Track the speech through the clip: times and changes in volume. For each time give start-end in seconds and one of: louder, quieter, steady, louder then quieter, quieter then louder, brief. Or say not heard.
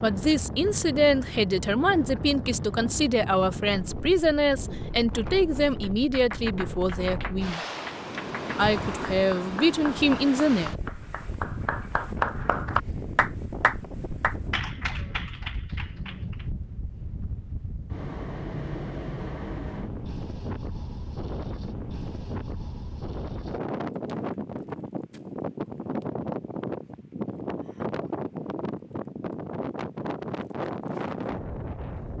0.0-7.6 steady
8.6-10.7 brief.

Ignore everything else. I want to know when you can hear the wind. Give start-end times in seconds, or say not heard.
0.0-32.1.